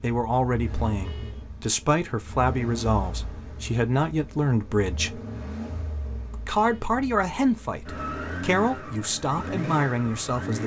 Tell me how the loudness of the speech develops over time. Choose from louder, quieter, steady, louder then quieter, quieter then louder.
steady.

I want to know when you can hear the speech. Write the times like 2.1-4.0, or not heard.
0.0-5.2, 6.3-10.6.